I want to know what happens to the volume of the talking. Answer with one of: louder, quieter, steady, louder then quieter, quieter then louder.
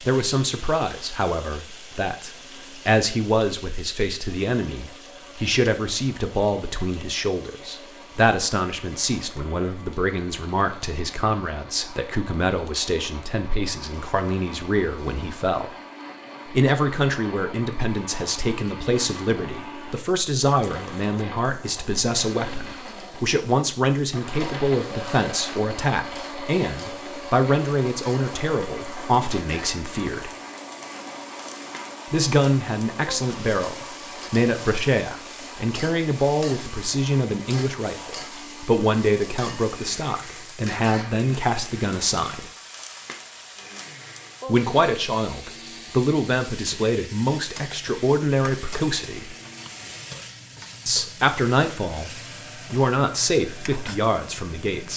steady.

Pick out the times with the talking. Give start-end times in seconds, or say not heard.
0.0-15.8, 16.4-30.3, 32.1-42.5, 44.5-49.4, 50.9-54.9.